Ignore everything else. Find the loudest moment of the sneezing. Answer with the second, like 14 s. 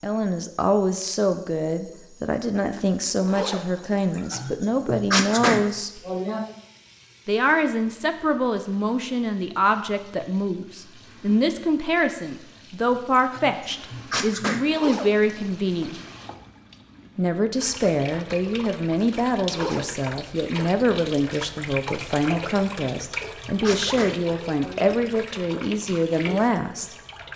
5 s.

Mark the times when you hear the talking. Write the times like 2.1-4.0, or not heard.
0.0-6.0, 7.2-15.9, 17.1-26.9.